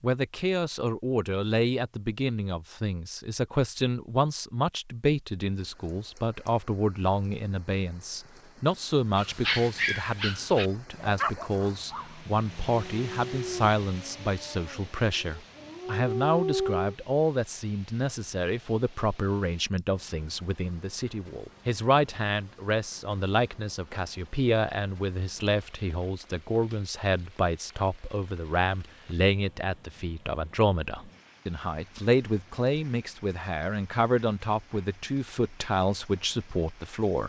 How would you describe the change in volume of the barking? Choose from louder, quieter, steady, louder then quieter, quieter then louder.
quieter then louder.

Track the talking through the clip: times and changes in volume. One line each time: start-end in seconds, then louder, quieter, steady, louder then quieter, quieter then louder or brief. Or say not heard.
0.0-37.2 steady.